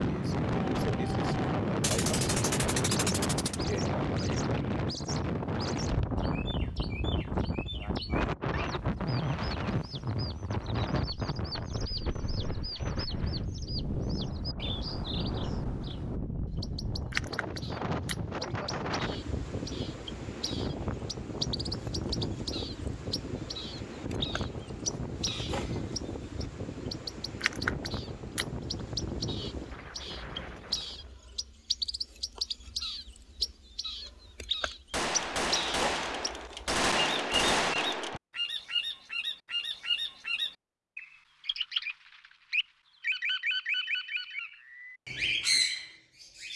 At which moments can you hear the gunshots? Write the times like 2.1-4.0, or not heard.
1.8-3.6, 34.9-38.2.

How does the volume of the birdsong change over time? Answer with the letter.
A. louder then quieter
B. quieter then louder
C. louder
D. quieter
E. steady
C.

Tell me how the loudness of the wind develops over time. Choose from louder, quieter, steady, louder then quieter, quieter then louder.
quieter.